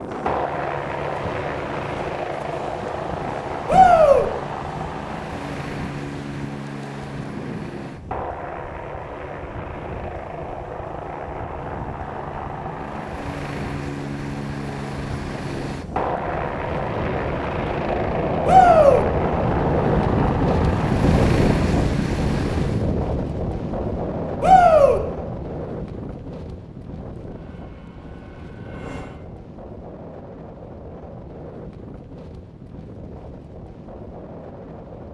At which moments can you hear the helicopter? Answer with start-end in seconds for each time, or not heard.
0.0-22.9, 27.2-29.4.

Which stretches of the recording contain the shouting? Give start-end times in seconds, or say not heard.
3.6-4.2, 18.4-19.1, 24.4-25.0.